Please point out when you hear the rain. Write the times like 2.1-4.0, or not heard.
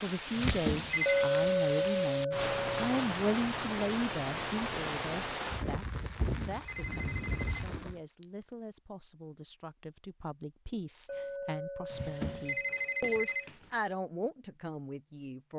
0.0-8.0.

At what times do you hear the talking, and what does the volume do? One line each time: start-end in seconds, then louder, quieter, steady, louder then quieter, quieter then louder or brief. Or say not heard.
0.0-15.5 quieter then louder.